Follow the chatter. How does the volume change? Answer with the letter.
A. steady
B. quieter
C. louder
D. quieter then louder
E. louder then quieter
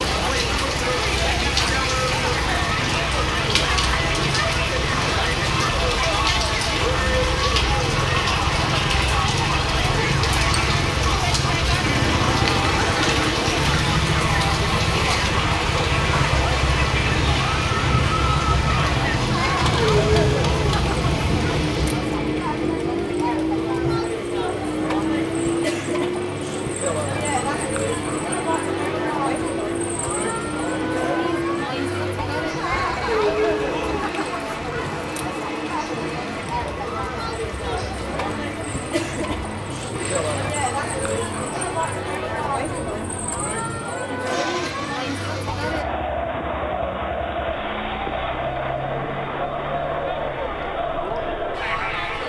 A.